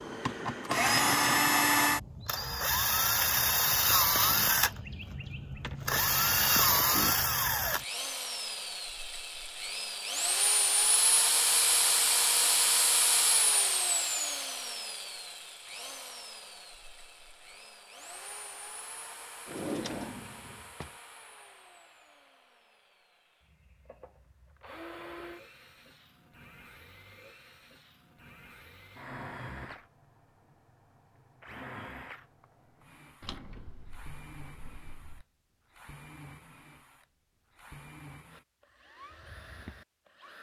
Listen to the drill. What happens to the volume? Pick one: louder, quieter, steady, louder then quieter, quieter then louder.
quieter.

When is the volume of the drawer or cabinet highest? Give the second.
20 s.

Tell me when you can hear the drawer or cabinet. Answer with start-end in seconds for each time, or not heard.
5.5-6.5, 19.4-20.9, 33.2-35.2.